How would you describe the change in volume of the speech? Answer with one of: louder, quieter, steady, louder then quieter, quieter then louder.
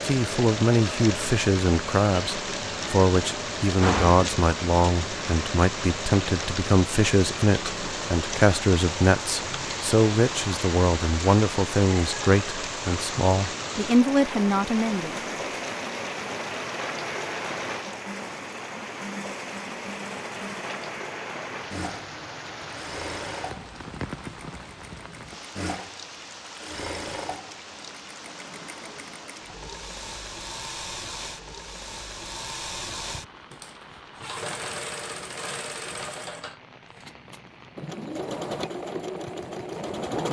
steady.